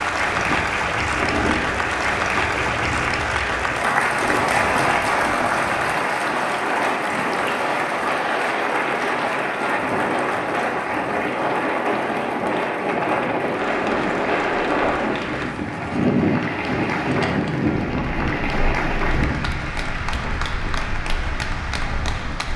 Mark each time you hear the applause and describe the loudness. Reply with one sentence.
The applause can be heard from 0.0 to 22.5 s, getting quieter.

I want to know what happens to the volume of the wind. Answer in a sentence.
The volume of the wind goes up, then down.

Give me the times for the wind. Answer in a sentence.
You can hear the wind from 0.2 to 22.5 s.